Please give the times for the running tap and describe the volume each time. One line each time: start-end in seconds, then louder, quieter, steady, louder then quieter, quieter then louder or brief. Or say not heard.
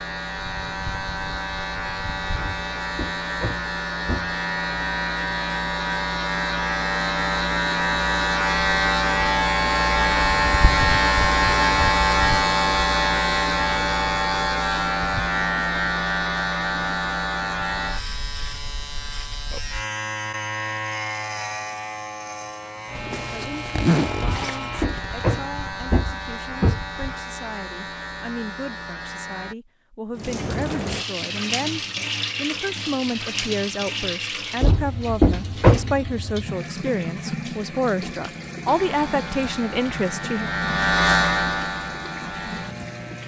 30.1-43.2 quieter.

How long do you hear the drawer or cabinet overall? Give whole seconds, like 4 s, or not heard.
6 s.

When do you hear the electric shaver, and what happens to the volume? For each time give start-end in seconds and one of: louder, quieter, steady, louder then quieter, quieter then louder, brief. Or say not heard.
0.0-29.6 louder then quieter
38.6-43.2 louder then quieter.